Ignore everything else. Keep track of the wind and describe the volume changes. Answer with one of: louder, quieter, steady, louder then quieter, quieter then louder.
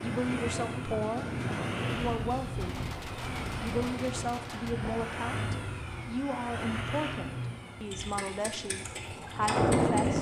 quieter then louder.